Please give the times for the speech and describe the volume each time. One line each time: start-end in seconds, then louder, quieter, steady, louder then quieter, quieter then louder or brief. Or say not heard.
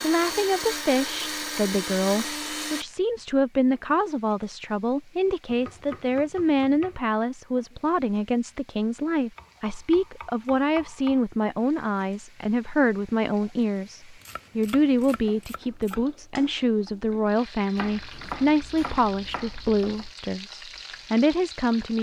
0.0-21.9 steady.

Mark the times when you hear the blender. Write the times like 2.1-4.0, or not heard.
0.0-2.9.